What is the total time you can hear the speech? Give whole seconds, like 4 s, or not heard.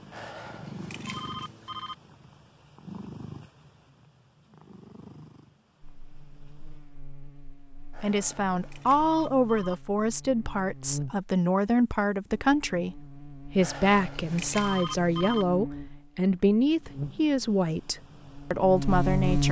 11 s.